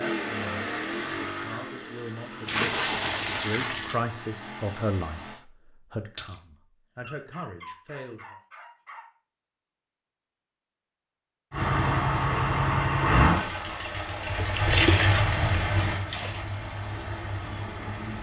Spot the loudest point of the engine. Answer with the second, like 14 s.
13 s.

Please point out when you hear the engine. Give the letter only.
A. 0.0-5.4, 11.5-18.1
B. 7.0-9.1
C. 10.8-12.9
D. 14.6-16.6
A.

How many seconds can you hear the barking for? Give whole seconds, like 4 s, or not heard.
2 s.